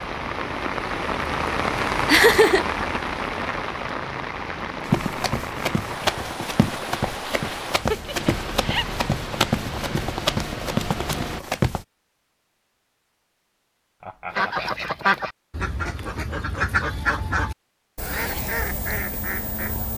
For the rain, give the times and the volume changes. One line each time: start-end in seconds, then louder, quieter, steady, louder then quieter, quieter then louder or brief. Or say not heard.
0.0-11.4 quieter.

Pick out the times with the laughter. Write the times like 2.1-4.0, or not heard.
2.0-2.6, 7.7-8.8, 14.0-15.1.